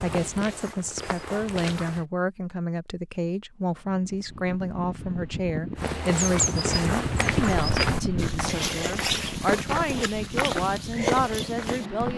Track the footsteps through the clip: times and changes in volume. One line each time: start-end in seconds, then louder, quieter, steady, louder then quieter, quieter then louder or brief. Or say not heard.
0.0-2.0 brief
5.8-12.1 steady.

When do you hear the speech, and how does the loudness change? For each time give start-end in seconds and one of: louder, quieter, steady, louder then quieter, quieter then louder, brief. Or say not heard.
0.0-12.1 steady.